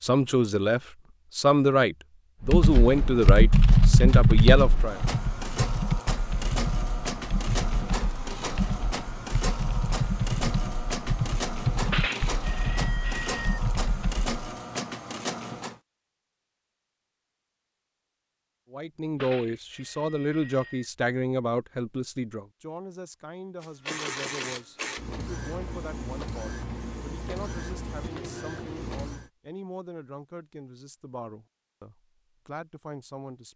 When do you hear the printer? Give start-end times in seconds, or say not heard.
2.5-15.8, 23.6-29.3.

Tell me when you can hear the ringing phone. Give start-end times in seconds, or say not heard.
11.9-13.6, 19.1-20.9.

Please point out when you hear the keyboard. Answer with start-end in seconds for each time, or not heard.
2.5-14.3.